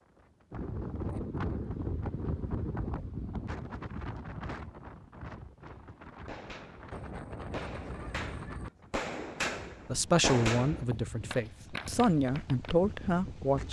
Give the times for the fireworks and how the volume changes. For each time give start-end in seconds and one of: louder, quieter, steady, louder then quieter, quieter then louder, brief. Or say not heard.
5.6-12.8 louder then quieter.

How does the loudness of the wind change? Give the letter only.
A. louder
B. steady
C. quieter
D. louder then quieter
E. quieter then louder
C.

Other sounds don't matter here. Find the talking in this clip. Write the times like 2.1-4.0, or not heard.
9.8-13.6.